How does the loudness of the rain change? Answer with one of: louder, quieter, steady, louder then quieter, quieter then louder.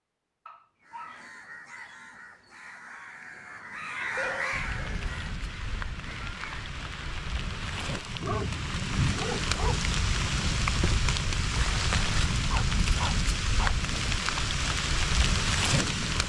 louder.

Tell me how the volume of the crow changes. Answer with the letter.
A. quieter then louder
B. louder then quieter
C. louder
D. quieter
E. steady
B.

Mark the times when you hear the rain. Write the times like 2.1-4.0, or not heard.
4.5-16.2.